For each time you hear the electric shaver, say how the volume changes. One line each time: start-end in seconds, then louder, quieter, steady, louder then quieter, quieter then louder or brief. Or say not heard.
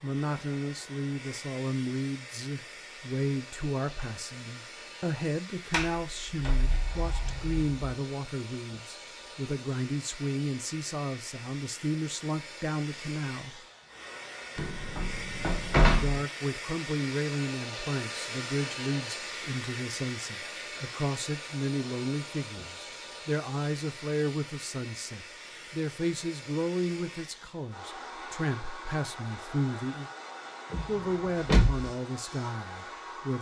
not heard.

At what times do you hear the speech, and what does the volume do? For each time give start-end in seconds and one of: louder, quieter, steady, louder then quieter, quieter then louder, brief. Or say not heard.
0.0-13.6 steady
15.9-30.1 steady
30.9-33.3 brief.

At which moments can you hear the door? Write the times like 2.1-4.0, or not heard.
5.7-7.8, 14.6-16.2, 30.7-31.9.